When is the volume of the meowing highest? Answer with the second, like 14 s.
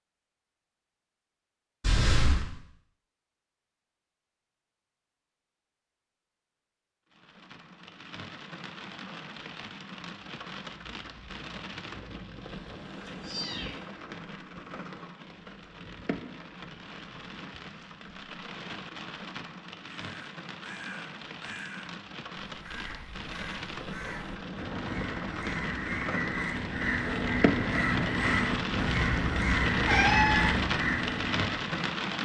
30 s.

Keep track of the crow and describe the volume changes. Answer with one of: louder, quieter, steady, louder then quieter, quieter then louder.
louder.